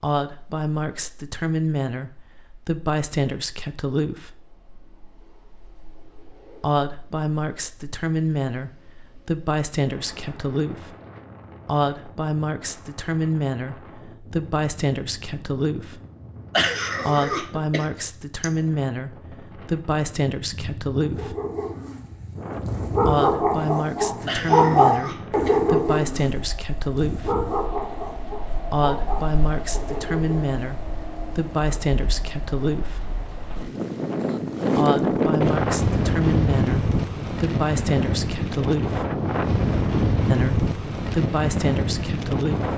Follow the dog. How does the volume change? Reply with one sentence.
The loudness of the dog goes up, then down.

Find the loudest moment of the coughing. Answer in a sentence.
The volume of the coughing peaks at 17 seconds.